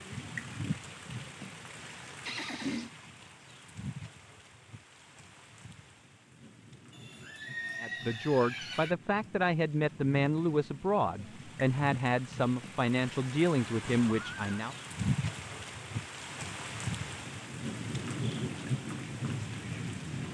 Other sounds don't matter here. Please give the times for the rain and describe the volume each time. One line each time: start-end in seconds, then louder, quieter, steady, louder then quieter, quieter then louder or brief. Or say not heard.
0.0-20.2 quieter then louder.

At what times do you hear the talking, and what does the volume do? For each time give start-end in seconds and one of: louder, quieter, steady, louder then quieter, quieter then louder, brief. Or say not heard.
7.8-14.8 steady.